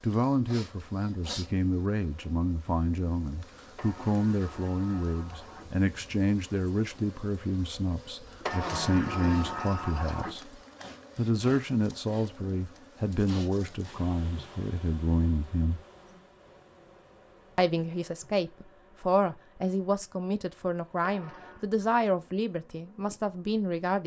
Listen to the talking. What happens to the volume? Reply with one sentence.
The volume of the talking stays about the same.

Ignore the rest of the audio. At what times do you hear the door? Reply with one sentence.
The door can be heard from 3.8 to 5.7 s, from 8.4 to 10.4 s and from 21.0 to 21.6 s.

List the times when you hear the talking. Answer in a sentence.
You can hear the talking from 0.0 to 15.8 s and from 17.6 to 24.0 s.